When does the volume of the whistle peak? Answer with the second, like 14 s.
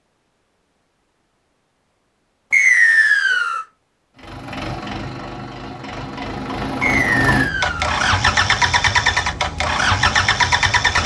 3 s.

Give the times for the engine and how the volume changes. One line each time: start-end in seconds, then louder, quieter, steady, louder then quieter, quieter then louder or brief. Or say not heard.
4.2-11.0 louder.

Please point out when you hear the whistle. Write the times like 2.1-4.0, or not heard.
2.5-3.6, 6.8-8.0.